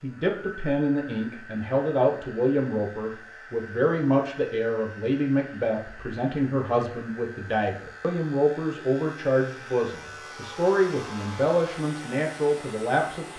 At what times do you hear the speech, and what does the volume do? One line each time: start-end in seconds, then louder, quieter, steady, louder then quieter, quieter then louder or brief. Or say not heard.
0.0-13.3 steady.